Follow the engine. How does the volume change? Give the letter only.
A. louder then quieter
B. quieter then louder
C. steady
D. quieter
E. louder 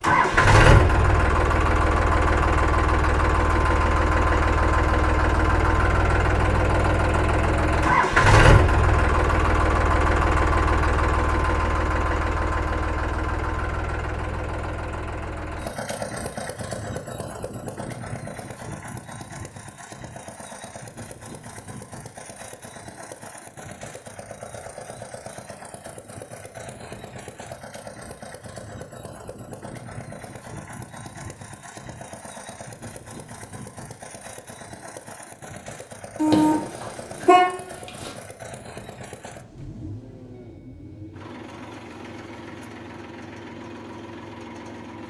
D.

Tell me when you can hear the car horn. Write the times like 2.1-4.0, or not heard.
36.1-38.1.